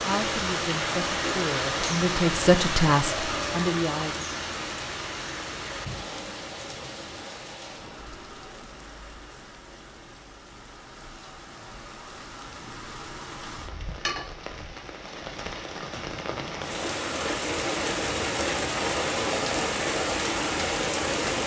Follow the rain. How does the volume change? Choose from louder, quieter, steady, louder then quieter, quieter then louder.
quieter then louder.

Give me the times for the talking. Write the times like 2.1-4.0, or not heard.
0.0-4.2.